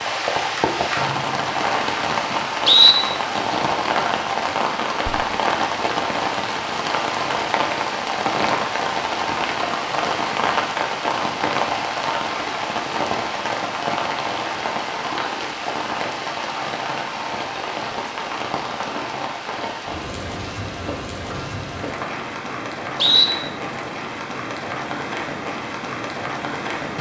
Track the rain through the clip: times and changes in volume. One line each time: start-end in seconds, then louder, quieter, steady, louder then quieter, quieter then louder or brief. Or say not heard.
0.0-26.9 quieter.